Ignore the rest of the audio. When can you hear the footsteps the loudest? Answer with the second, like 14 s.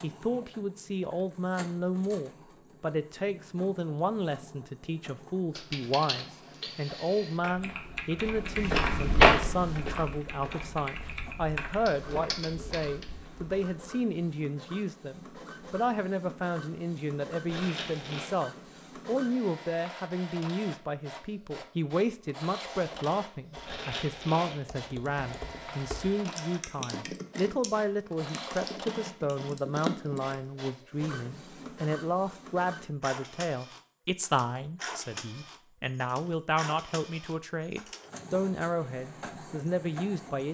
9 s.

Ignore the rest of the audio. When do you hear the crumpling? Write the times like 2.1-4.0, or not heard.
17.4-18.3, 23.6-24.6.